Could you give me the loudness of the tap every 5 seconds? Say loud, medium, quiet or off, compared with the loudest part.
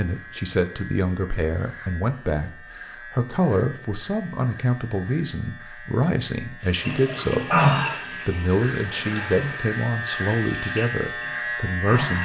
off, loud, medium.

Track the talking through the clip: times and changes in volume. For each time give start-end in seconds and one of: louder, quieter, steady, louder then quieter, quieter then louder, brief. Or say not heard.
0.0-12.2 steady.